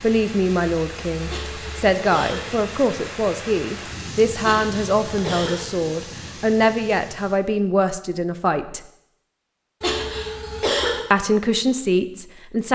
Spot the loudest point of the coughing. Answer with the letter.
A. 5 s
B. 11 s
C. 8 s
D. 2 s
B.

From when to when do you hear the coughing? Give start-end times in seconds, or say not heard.
1.2-2.5, 4.4-5.7, 9.8-11.0.